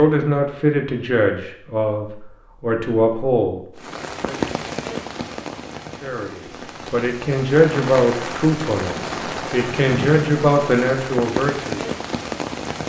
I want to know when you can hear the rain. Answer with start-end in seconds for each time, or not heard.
3.8-12.8.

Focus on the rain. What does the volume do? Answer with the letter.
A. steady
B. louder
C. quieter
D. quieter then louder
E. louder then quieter
D.